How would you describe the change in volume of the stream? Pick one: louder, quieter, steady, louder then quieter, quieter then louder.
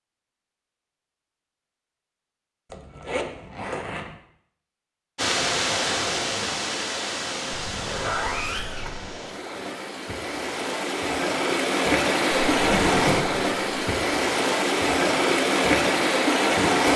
quieter then louder.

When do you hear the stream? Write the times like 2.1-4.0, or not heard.
5.2-16.9.